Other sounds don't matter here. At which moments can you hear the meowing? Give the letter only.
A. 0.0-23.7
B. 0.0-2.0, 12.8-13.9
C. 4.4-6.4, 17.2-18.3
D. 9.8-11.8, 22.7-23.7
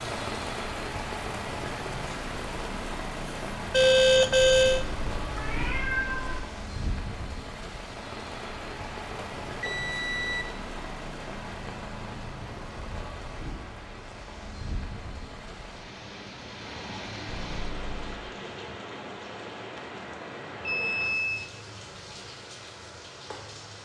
C.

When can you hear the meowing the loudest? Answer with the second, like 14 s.
6 s.